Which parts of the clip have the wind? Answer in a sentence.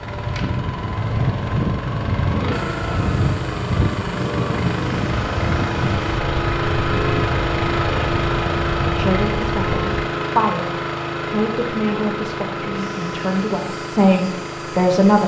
The wind can be heard from 0.0 to 9.8 s.